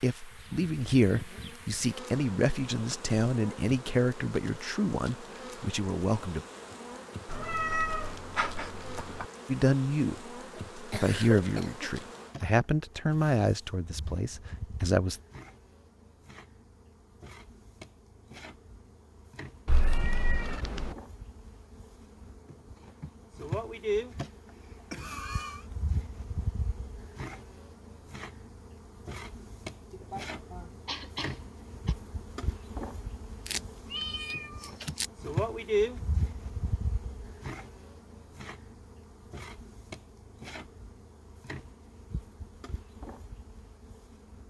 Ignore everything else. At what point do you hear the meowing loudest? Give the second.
8 s.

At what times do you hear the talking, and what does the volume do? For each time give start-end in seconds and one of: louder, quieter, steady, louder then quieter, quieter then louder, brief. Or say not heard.
0.0-6.5 quieter
9.4-10.2 brief
10.8-15.2 quieter.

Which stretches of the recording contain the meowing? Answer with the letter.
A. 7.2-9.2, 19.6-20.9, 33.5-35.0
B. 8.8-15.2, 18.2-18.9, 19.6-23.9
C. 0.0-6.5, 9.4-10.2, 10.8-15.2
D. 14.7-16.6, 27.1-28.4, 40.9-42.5
A.